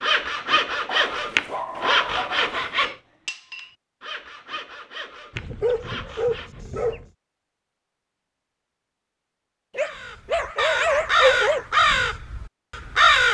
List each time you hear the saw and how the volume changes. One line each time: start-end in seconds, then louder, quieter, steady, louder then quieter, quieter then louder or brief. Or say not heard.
0.0-6.6 quieter.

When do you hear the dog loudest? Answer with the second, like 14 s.
11 s.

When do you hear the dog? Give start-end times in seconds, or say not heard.
0.8-2.8, 5.3-7.0, 9.8-11.7.